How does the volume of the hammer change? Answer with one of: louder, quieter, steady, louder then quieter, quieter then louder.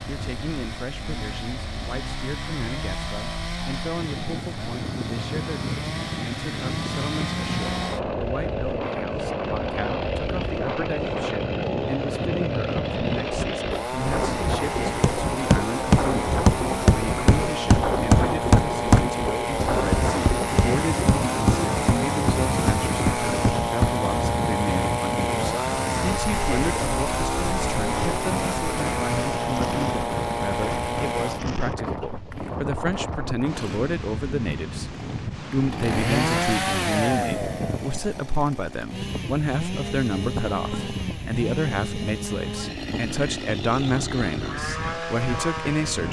quieter.